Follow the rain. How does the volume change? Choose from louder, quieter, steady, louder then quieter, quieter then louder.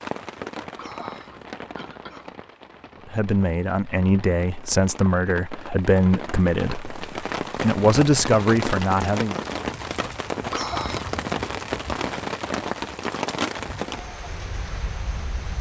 louder.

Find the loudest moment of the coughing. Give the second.
11 s.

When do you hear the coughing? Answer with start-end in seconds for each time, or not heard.
0.8-2.4, 10.5-11.1.